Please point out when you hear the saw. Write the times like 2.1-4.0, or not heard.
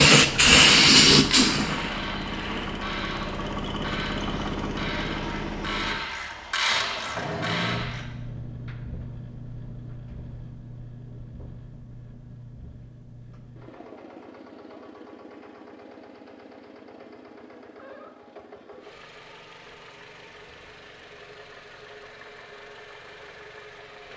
not heard.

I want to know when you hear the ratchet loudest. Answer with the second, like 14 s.
7 s.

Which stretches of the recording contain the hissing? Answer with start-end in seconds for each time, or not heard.
0.0-3.0.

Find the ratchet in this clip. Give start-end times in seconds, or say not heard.
1.6-8.1.